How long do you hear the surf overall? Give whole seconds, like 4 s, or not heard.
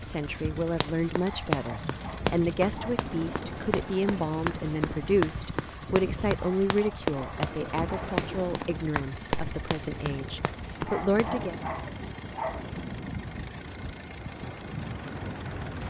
16 s.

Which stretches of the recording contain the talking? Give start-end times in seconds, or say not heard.
0.0-11.6.